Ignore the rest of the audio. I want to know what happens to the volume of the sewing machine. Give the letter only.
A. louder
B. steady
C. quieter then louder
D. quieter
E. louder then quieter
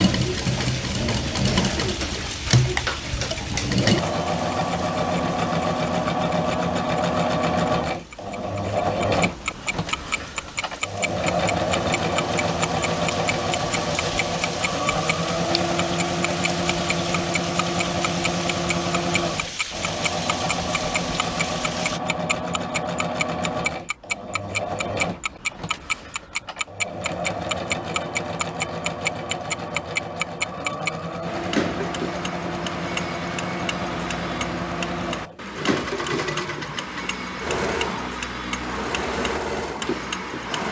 D.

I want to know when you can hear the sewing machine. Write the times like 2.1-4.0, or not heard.
0.0-40.6.